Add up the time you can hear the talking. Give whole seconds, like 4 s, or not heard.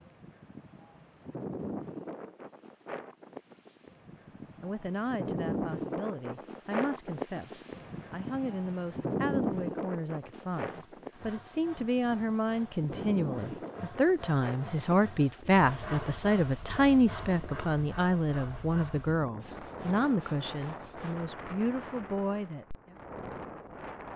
18 s.